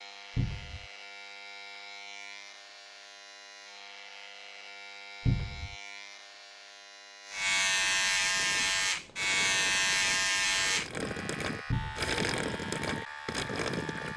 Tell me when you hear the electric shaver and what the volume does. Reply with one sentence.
The electric shaver can be heard from 0.0 to 14.1 s, getting louder then quieter.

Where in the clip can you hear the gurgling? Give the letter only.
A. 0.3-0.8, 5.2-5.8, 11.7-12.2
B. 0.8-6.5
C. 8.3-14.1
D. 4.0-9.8
C.